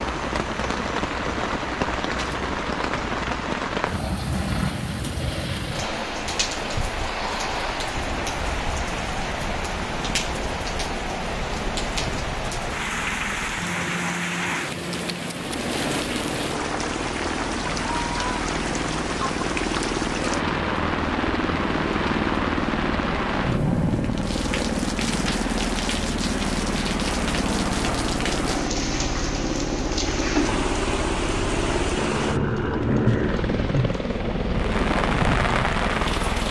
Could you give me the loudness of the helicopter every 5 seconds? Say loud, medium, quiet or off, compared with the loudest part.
medium, medium, medium, medium, loud, loud, loud, loud.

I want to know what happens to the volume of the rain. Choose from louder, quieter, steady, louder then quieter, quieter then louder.
steady.